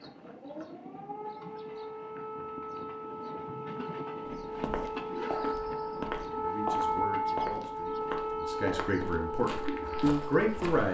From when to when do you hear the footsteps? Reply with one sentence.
You can hear the footsteps from 4.4 to 10.8 s.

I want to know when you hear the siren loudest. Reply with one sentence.
The volume of the siren peaks at 7 seconds.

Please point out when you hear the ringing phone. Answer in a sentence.
The ringing phone can't be heard in this clip.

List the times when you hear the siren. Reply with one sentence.
The siren can be heard from 0.0 to 10.6 s.